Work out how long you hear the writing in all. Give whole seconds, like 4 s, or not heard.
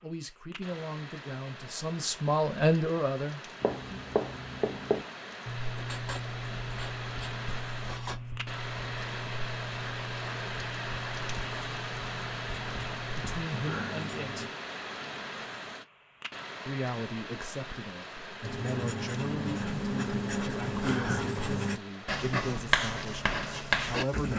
17 s.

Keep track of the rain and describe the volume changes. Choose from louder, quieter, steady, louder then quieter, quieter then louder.
louder then quieter.